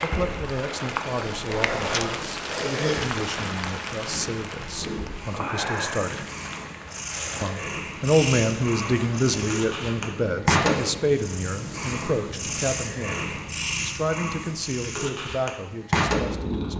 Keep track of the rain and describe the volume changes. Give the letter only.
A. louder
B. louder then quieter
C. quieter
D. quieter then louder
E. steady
C.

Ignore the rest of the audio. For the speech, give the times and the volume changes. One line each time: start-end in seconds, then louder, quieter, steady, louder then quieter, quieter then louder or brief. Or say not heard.
0.0-6.2 steady
7.4-16.7 quieter.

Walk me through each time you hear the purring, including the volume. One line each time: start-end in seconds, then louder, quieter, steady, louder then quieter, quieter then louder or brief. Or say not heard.
0.0-16.7 louder.